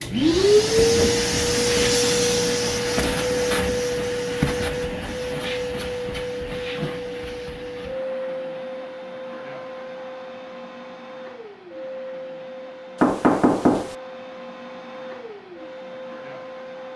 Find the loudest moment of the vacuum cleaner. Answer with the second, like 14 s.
1 s.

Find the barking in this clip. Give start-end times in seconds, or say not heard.
not heard.